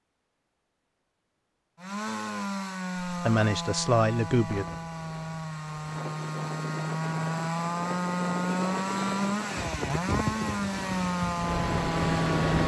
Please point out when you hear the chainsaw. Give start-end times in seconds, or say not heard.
1.8-12.6.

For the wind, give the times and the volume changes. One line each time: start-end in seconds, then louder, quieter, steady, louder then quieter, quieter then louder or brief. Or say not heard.
4.5-12.6 louder.